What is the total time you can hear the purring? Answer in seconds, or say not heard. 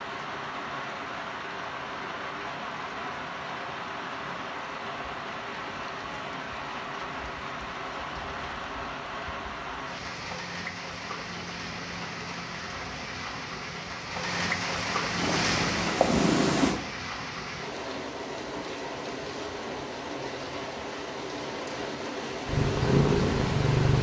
3 s.